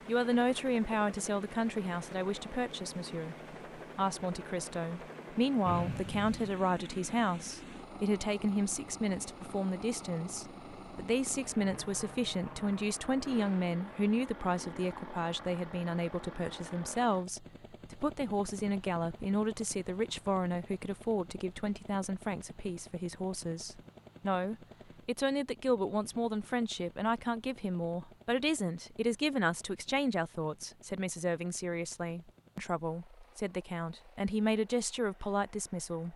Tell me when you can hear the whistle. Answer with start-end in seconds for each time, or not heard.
5.7-6.6.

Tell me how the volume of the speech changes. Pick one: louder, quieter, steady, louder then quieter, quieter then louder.
steady.